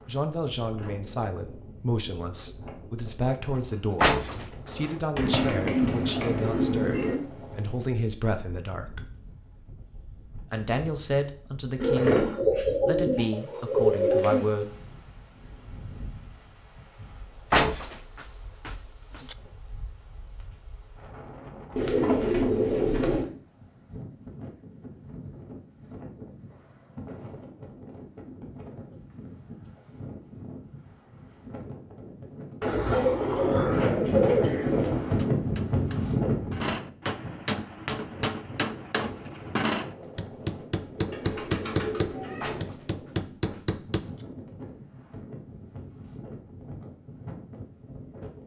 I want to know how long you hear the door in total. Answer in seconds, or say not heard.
4 s.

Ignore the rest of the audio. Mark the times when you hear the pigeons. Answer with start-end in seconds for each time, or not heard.
5.2-7.2, 11.8-14.4, 21.8-23.2, 32.6-35.3, 41.0-42.6.